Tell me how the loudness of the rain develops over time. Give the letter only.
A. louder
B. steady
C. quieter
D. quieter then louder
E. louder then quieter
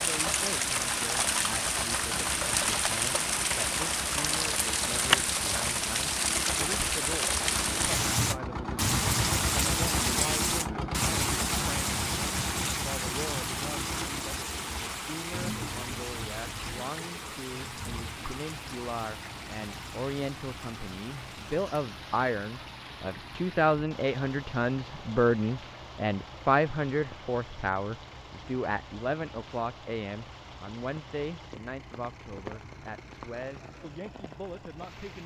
C.